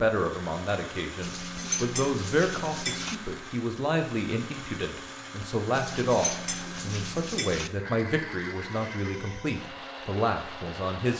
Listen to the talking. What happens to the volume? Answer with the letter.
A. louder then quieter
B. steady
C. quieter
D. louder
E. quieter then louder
B.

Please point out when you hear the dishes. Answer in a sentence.
The dishes can be heard from 1.2 to 3.1 s and from 5.7 to 7.7 s.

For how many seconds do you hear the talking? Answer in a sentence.
You can hear the talking for 11 seconds altogether.